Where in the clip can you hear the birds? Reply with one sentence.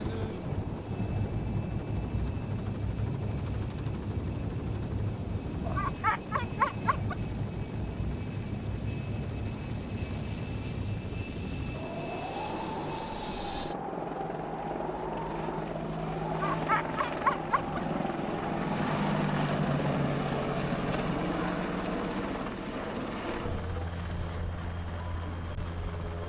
The birds can't be heard in this clip.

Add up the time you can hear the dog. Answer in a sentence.
The dog can be heard for 3 seconds in total.